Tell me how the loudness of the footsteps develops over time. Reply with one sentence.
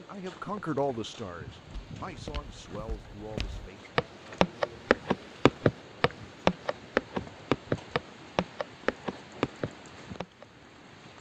The loudness of the footsteps goes up, then down.